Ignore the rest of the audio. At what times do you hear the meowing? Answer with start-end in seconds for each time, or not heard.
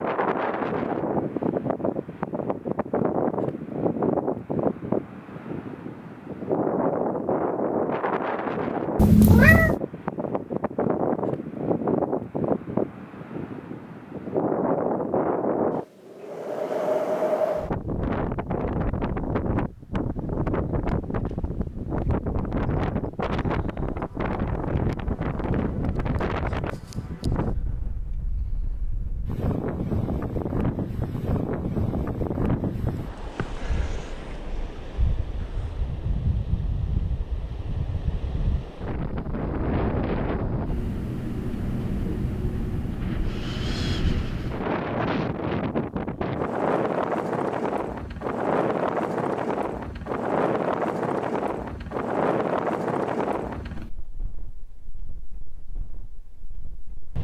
8.9-9.8.